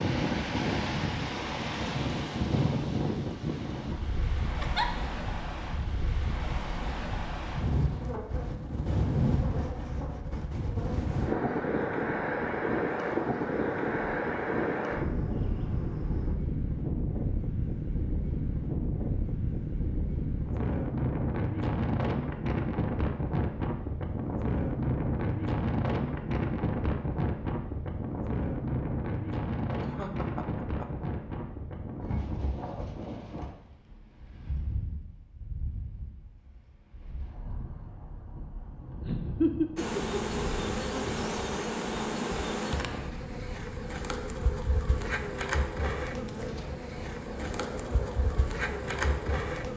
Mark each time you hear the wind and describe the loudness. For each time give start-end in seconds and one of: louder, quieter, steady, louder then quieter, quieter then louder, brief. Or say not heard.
0.0-49.7 quieter.